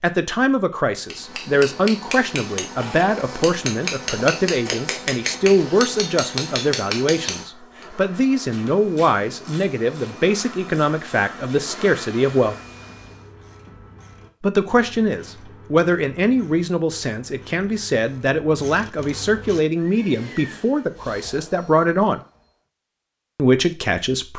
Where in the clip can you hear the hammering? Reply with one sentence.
The hammering can be heard from 1.0 to 7.8 s.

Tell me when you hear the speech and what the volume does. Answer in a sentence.
You can hear the speech from 0.0 to 12.6 s, at a steady volume; from 14.4 to 22.2 s, at a steady volume; and briefly from 23.4 to 24.3 s.